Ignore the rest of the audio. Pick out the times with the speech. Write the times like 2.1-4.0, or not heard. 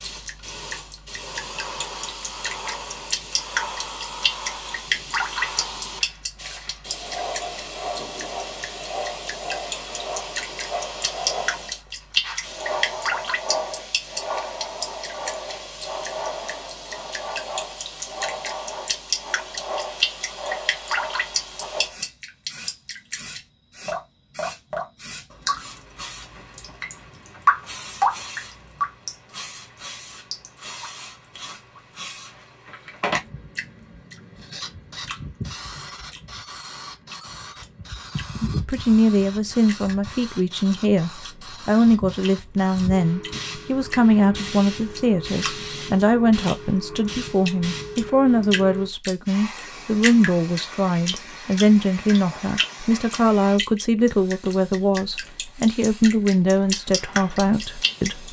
38.4-58.2.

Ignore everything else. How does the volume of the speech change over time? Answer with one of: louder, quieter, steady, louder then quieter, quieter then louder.
steady.